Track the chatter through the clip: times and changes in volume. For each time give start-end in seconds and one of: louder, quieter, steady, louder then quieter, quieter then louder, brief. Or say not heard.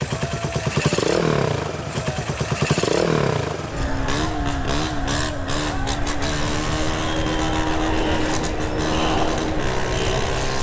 0.0-10.5 louder.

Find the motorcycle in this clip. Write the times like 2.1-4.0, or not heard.
0.0-10.5.